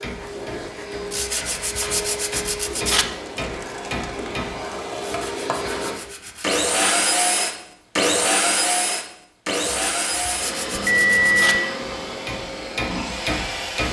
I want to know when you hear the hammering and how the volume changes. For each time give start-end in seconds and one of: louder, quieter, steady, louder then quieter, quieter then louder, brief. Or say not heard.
0.0-4.7 louder
11.8-13.8 brief.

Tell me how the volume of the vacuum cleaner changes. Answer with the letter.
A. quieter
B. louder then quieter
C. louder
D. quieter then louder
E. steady
B.